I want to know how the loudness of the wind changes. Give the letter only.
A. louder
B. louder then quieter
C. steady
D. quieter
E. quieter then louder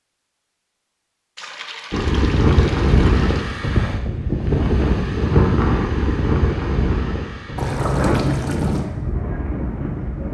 D.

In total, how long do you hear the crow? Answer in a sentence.
The crow can't be heard in this clip.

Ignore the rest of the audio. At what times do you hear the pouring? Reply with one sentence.
The pouring can be heard from 1.4 to 3.5 s and from 7.5 to 8.9 s.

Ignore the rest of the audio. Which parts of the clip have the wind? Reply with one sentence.
You can hear the wind from 1.9 to 10.3 s.